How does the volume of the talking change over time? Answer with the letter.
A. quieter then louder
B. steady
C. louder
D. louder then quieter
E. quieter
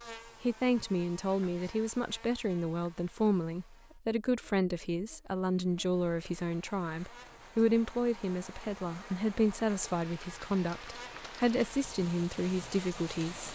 B.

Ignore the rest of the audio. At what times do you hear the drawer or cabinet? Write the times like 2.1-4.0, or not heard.
not heard.